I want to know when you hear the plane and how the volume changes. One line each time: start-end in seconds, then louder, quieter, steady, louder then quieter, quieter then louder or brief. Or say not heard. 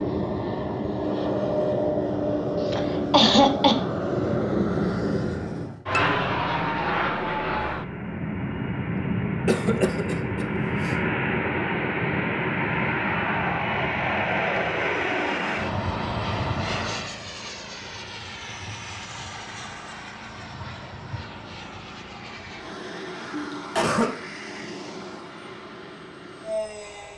0.0-27.1 quieter.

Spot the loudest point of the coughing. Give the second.
3 s.